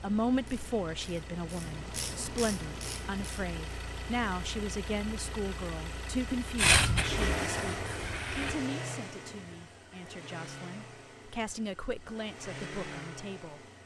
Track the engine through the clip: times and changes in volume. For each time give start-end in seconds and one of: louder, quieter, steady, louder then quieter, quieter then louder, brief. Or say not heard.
0.0-13.8 louder then quieter.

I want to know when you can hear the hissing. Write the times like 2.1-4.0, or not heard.
6.5-8.7.